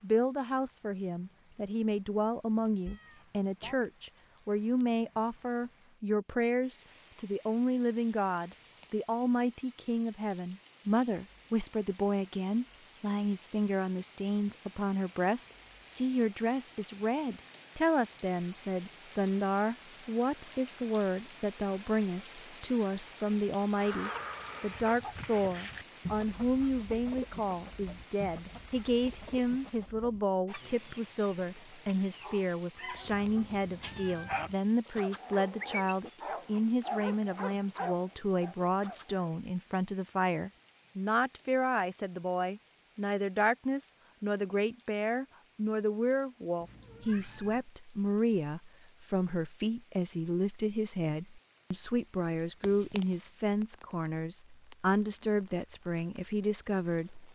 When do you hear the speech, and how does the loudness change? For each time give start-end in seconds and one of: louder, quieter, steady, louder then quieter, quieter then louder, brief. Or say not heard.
0.0-57.3 steady.